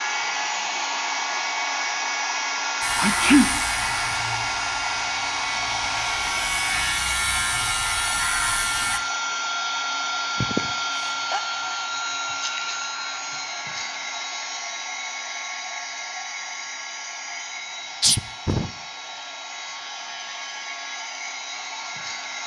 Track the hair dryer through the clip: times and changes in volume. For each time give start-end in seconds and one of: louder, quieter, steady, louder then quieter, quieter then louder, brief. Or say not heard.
0.0-22.4 quieter.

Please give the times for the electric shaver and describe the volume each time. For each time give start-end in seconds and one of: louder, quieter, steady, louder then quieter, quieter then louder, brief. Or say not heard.
2.8-9.0 quieter then louder.